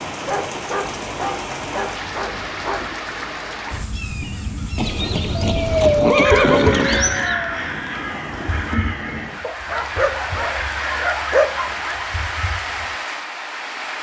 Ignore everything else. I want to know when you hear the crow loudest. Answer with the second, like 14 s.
7 s.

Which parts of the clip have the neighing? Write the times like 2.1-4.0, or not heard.
4.8-7.3.